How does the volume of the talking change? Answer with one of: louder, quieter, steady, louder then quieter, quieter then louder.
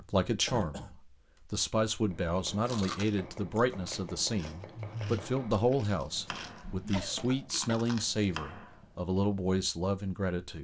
steady.